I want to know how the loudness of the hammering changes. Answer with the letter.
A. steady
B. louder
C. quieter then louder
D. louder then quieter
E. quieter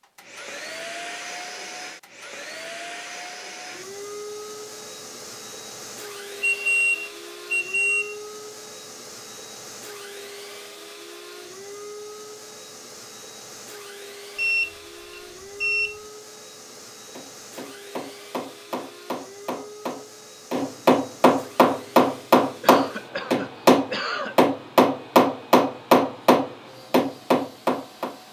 B.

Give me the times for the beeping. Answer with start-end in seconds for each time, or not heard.
6.4-8.2, 14.3-15.9.